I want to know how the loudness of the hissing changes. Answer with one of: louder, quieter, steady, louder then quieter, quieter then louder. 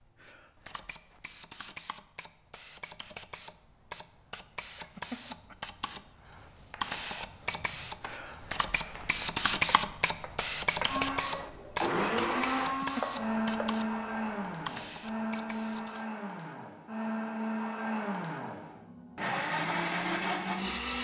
louder then quieter.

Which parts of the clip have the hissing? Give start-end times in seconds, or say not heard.
0.0-16.1.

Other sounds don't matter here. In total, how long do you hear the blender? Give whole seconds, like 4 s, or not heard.
10 s.